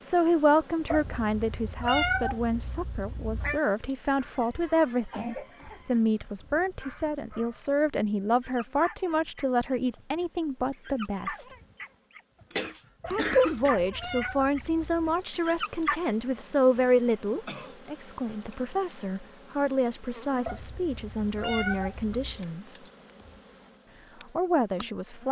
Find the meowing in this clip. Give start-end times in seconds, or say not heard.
0.9-3.6, 13.0-15.2, 20.4-22.4.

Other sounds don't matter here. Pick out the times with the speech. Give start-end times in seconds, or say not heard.
0.0-11.4, 13.1-22.8, 24.4-25.2.